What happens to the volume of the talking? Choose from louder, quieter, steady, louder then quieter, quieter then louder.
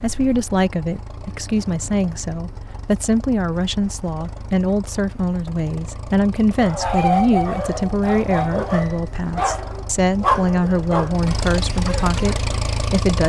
steady.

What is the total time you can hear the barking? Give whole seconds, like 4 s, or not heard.
6 s.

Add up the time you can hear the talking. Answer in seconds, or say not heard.
13 s.